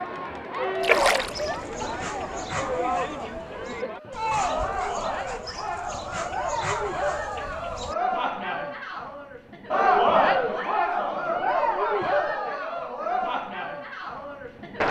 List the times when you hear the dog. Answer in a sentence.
The dog can be heard from 1.1 to 8.0 s.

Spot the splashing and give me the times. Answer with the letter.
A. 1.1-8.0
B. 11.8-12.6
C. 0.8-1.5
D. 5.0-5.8
C.